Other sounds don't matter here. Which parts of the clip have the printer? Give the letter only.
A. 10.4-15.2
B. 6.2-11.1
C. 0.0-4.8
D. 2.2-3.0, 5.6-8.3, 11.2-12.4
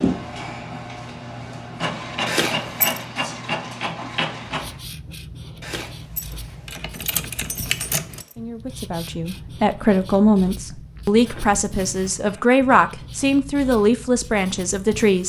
C.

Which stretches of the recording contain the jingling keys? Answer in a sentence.
The jingling keys can be heard from 2.2 to 3.0 s, from 5.6 to 8.3 s and from 11.2 to 12.4 s.